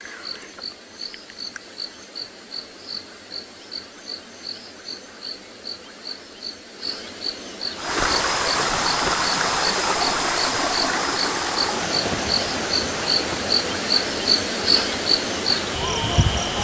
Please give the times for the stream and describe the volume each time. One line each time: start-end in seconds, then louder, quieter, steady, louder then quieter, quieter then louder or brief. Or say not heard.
7.8-16.5 quieter.